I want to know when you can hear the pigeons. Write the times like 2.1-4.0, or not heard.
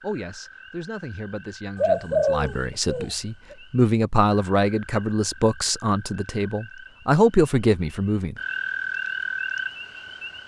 1.8-3.5.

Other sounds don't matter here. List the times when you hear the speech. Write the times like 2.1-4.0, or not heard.
0.0-8.3.